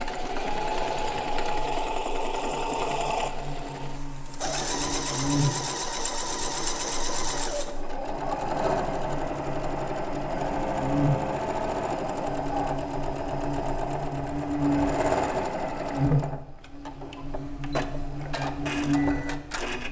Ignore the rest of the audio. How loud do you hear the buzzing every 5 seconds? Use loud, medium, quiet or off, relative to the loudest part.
quiet, medium, loud, loud.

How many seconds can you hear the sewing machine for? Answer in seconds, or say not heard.
20 s.